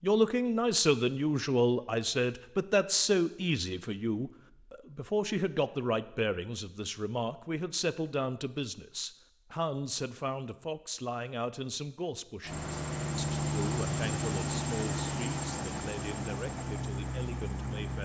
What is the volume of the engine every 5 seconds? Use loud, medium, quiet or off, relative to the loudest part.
off, off, loud, loud.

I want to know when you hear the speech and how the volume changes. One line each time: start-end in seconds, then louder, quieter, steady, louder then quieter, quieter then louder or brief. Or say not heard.
0.0-17.9 quieter.